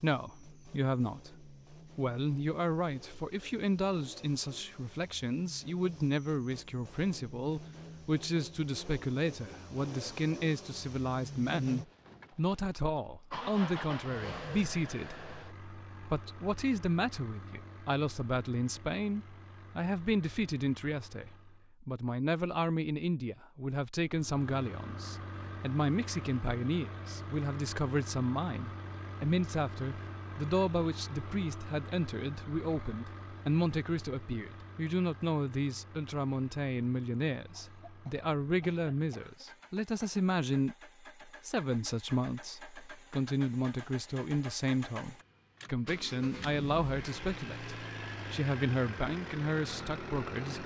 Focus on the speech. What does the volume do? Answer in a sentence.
The loudness of the speech stays about the same.